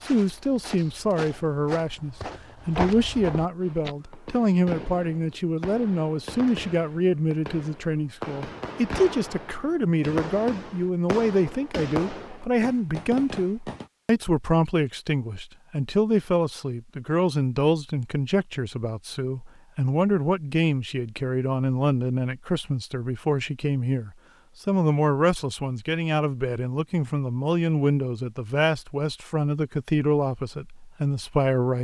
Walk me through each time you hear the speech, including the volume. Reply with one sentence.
The speech can be heard from 0.0 to 31.7 s, at a steady volume.